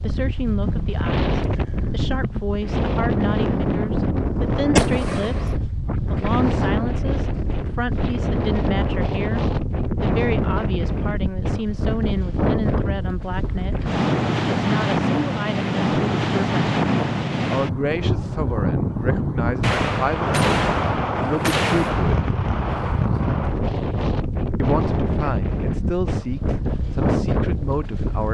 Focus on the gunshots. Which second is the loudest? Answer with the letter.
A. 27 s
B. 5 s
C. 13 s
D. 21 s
B.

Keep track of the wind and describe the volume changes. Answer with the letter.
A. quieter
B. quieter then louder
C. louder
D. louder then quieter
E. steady
E.